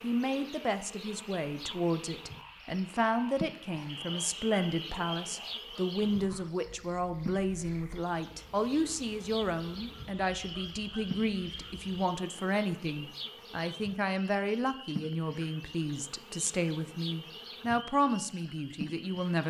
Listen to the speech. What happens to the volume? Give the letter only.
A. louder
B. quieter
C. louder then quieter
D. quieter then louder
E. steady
E.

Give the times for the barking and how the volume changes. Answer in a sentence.
You can't hear the barking here.